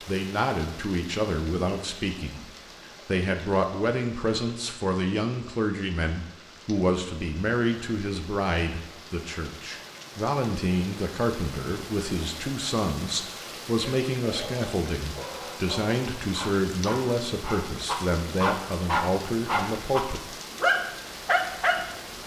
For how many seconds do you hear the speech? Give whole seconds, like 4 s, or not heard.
20 s.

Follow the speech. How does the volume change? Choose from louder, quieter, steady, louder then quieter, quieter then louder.
steady.